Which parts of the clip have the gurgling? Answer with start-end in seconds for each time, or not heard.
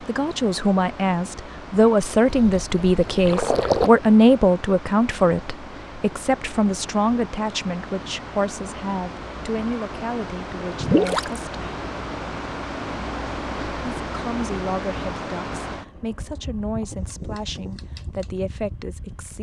2.2-3.9, 10.8-11.4.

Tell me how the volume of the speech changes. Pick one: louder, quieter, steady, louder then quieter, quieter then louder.
quieter.